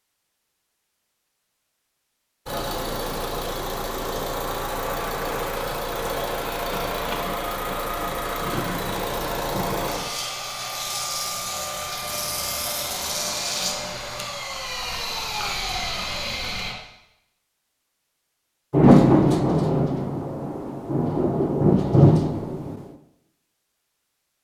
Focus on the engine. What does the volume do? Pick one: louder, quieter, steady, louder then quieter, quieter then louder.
steady.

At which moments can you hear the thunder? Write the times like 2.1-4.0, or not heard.
6.7-10.1, 18.7-22.8.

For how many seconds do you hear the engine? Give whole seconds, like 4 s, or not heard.
14 s.